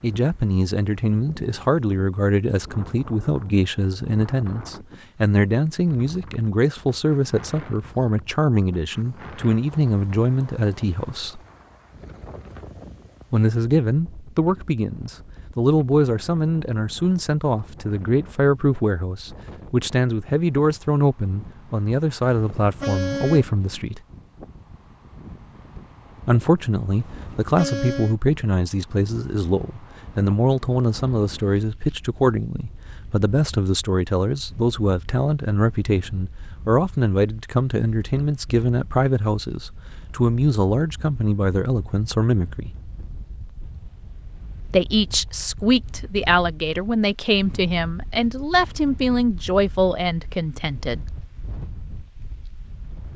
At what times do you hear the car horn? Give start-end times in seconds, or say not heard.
22.2-23.5, 26.9-28.1.